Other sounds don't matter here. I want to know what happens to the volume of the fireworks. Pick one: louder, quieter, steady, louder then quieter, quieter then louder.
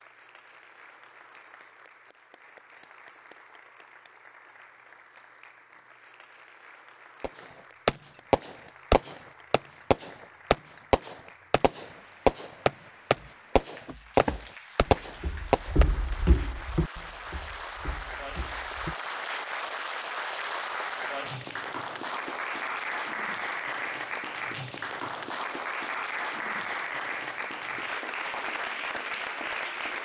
steady.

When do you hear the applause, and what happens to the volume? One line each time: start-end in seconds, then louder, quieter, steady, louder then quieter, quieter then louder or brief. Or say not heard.
0.0-30.0 louder.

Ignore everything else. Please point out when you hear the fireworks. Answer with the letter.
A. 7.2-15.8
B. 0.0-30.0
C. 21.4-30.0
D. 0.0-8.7
A.